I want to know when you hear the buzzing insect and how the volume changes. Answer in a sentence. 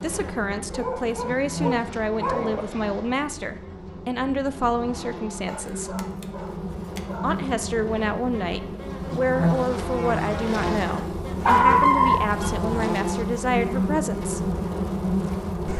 You can hear the buzzing insect from 0.0 to 15.7 s, getting louder.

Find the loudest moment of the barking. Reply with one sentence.
The volume of the barking peaks at 12 seconds.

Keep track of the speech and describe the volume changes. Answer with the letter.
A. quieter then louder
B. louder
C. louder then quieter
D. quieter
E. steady
E.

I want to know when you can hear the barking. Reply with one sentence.
The barking can be heard from 0.7 to 2.6 s, from 5.5 to 7.3 s and from 11.4 to 12.6 s.